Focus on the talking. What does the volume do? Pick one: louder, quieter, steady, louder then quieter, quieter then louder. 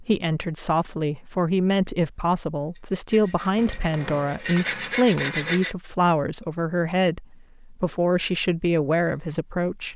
steady.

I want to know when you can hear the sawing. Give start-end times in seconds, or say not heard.
2.8-5.8.